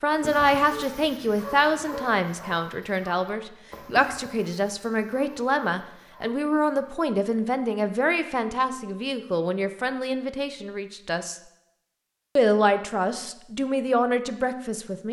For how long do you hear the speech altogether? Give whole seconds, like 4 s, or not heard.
14 s.